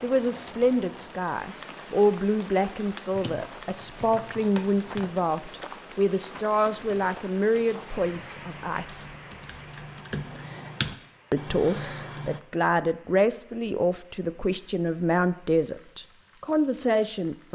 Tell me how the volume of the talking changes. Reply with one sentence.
The volume of the talking stays about the same.